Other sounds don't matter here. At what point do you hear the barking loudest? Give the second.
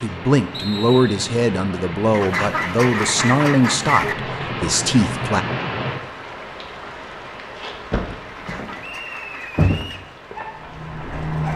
10 s.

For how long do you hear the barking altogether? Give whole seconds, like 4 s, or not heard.
2 s.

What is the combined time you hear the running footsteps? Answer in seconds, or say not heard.
not heard.